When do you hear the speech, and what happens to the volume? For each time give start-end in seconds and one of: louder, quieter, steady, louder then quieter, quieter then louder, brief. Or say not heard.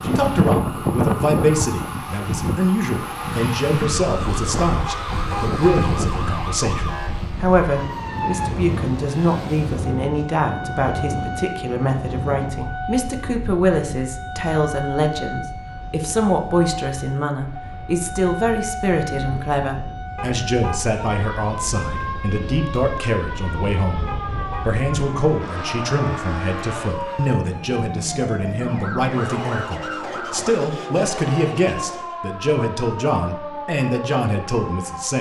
0.0-35.1 steady.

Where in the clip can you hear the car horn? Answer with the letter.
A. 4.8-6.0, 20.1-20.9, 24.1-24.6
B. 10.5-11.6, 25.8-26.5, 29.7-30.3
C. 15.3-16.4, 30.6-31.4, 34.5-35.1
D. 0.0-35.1
A.